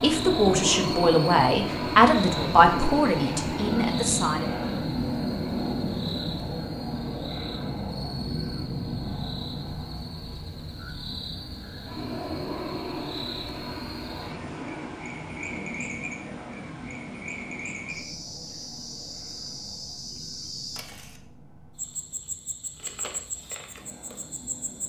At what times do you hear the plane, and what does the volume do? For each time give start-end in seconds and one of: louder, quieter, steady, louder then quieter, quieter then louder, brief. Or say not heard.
0.0-24.8 quieter.